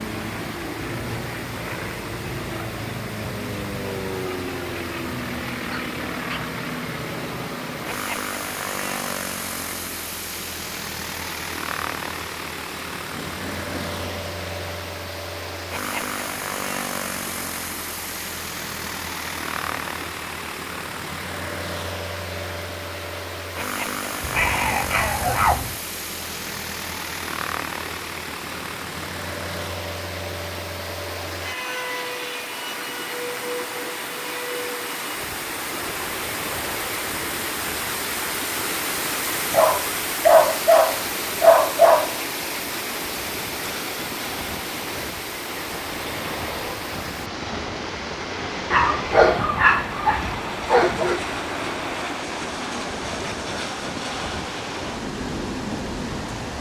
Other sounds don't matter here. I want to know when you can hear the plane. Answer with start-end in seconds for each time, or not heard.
0.0-56.5.